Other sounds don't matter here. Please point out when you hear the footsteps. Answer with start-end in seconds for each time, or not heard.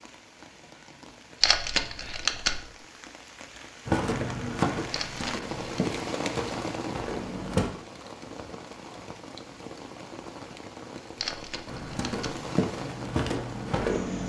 3.9-7.7, 11.7-14.2.